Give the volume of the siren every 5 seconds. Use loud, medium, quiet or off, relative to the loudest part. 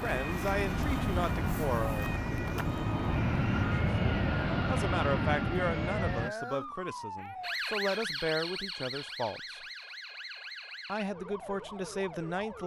medium, loud, medium.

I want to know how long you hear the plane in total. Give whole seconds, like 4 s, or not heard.
6 s.